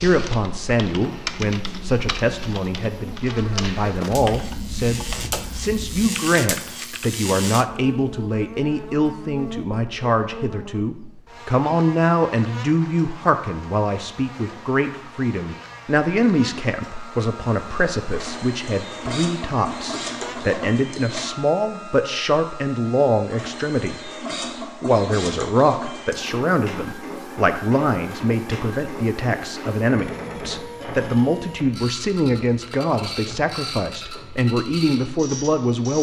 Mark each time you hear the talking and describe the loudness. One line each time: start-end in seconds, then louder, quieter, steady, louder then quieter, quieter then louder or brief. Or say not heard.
0.0-35.9 steady.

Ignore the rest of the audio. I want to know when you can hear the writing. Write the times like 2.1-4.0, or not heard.
not heard.